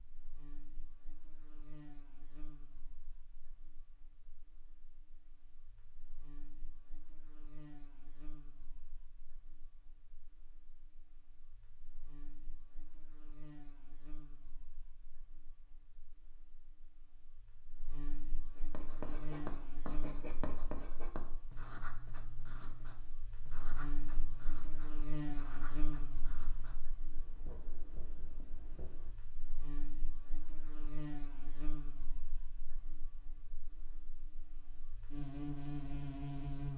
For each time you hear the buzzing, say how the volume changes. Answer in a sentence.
The buzzing can be heard from 0.0 to 36.7 s, getting louder.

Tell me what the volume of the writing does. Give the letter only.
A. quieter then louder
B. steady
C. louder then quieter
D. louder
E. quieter
E.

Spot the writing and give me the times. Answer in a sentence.
You can hear the writing from 18.6 to 29.5 s.